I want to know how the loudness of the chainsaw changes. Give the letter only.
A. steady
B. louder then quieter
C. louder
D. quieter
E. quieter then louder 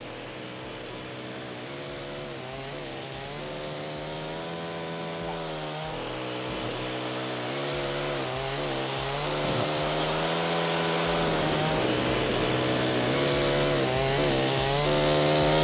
C.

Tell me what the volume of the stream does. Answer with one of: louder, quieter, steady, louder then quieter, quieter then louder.
louder.